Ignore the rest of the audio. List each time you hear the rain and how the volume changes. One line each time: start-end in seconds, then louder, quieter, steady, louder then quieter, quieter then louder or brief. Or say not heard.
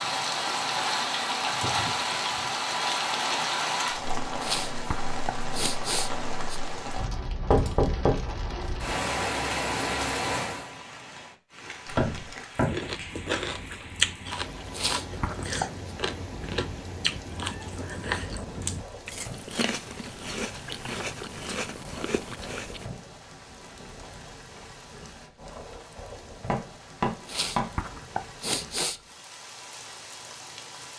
0.0-30.9 quieter.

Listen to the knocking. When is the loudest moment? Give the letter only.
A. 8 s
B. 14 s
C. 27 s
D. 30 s
A.